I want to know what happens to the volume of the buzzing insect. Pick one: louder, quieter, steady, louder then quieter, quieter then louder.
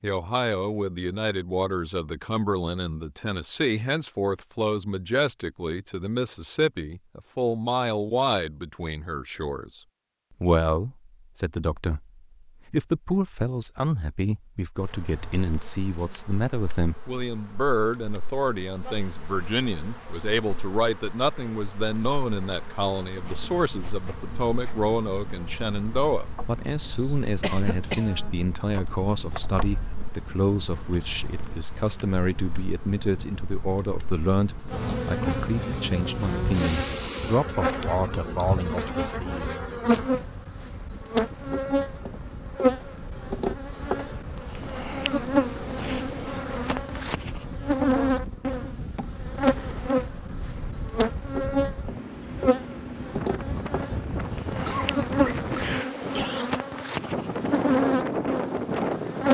louder.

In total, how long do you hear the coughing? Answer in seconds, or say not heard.
3 s.